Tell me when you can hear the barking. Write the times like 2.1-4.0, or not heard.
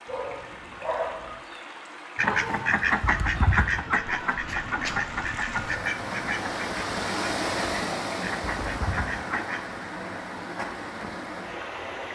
0.1-1.4.